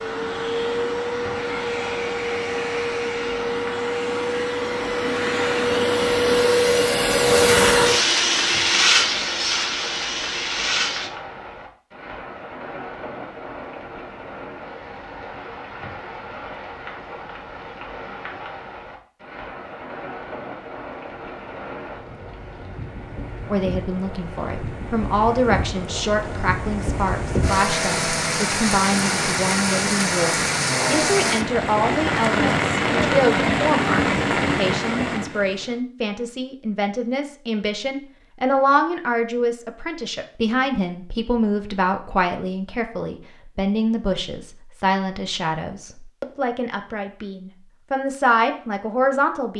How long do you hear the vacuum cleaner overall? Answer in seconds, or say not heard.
11 s.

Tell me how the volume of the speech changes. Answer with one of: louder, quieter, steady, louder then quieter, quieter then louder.
steady.